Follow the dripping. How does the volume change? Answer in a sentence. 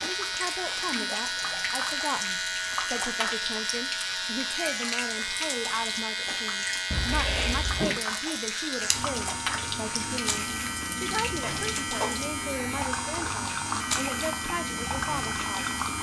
The volume of the dripping stays about the same.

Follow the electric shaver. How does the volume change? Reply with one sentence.
The loudness of the electric shaver stays about the same.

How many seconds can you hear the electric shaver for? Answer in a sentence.
The electric shaver can be heard for 16 seconds in total.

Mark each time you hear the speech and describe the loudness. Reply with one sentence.
The speech can be heard from 0.0 to 15.8 s, at a steady volume.